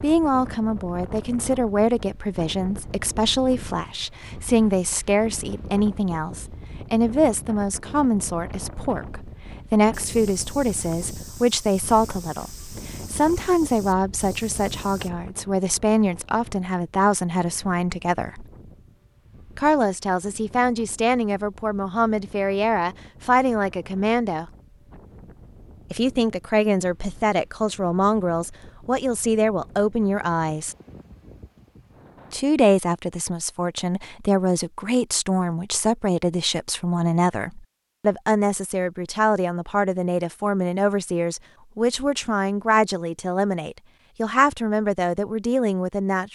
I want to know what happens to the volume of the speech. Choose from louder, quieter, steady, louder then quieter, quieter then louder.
steady.